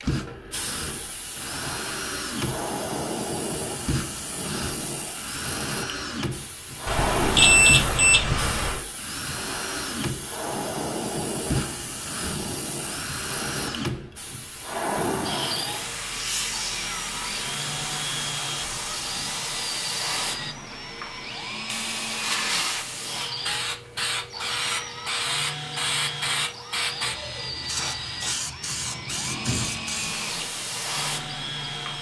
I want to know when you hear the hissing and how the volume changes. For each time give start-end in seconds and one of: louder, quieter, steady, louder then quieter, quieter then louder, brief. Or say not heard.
0.0-31.9 steady.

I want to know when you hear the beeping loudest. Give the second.
8 s.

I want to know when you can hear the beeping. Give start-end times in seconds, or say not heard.
6.8-8.8.